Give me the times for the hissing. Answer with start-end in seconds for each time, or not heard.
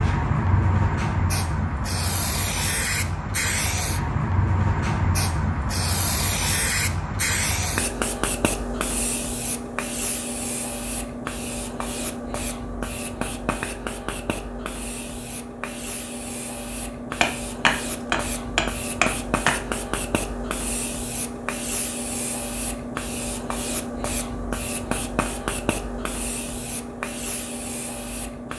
0.0-28.5.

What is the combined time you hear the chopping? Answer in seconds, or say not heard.
2 s.